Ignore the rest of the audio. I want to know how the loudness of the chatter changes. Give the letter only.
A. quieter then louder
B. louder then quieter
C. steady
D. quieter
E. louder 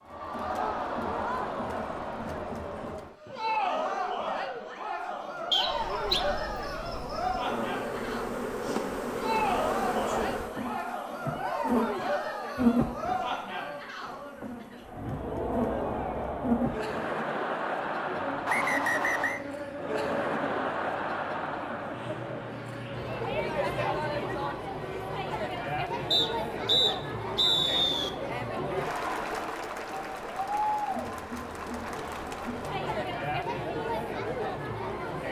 C.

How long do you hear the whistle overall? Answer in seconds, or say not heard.
4 s.